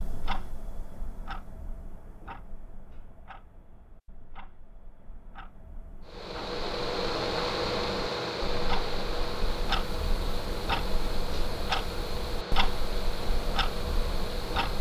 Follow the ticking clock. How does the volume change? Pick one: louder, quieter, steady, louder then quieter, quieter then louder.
quieter then louder.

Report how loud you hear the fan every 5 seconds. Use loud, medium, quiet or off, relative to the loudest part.
off, loud, medium.